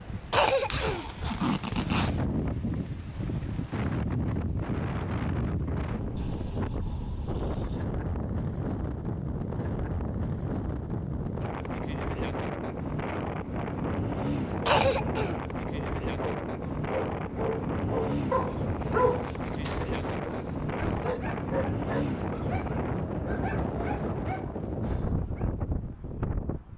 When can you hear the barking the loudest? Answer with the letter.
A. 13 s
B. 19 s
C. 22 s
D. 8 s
B.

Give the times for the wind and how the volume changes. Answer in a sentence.
The wind can be heard from 0.0 to 26.7 s, at a steady volume.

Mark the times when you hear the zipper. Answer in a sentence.
You can hear the zipper from 0.7 to 2.2 s.